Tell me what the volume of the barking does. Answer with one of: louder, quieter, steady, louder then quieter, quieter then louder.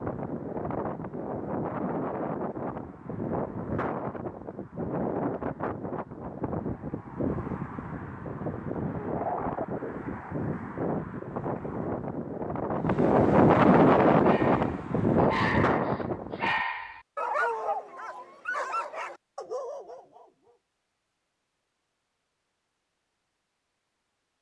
quieter.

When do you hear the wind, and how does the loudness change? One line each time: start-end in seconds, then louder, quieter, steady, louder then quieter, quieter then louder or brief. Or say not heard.
0.0-16.6 louder.